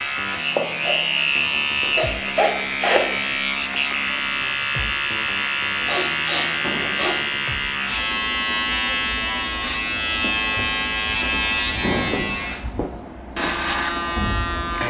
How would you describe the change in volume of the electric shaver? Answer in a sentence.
The loudness of the electric shaver stays about the same.